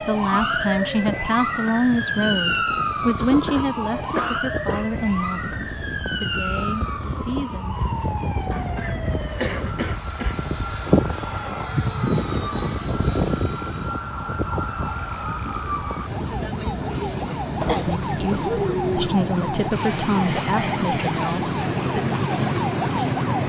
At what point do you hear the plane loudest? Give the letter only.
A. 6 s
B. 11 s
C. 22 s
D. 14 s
B.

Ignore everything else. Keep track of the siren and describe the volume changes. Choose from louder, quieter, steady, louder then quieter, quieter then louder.
quieter then louder.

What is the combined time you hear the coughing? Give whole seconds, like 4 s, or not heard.
5 s.